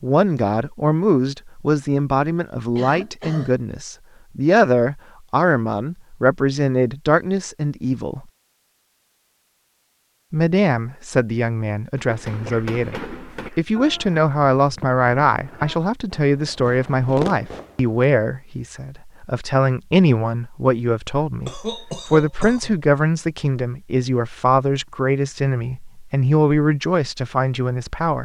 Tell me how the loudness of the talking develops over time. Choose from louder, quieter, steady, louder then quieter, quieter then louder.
steady.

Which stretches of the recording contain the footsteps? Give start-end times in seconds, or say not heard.
not heard.